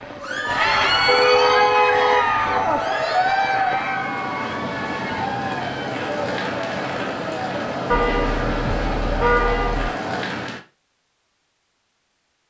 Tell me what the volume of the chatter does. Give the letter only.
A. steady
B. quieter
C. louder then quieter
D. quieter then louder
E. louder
B.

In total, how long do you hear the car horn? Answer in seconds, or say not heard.
4 s.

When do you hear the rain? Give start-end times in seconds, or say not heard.
0.0-10.6.